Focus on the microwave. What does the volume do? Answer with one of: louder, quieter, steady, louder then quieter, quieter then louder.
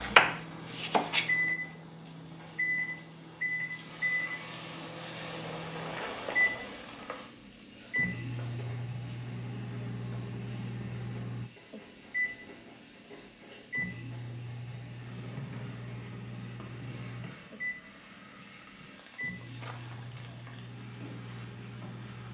quieter.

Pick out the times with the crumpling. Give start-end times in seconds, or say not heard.
5.7-7.2, 19.6-20.4.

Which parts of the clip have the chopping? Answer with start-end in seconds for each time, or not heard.
0.0-1.3.